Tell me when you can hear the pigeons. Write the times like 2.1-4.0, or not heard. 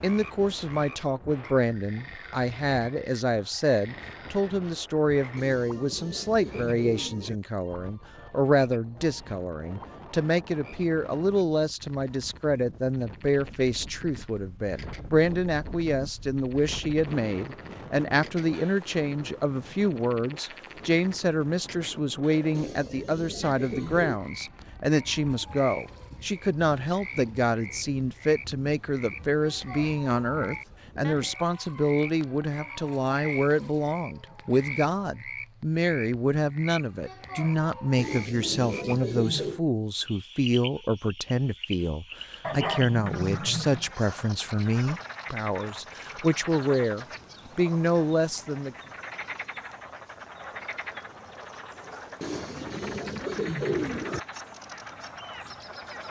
5.3-7.4, 22.5-24.2, 38.0-39.6, 52.2-54.2.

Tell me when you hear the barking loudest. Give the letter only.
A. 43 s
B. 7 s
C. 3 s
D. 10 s
A.